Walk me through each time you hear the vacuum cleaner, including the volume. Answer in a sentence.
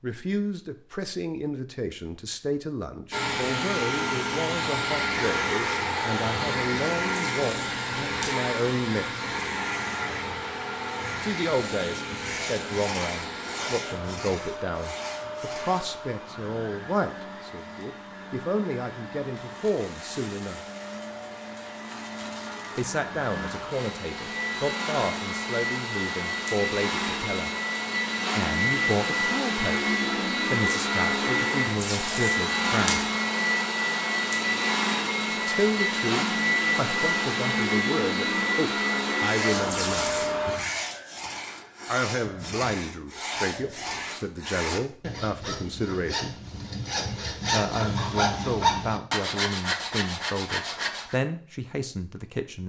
You can hear the vacuum cleaner from 3.1 to 40.6 s, getting quieter then louder.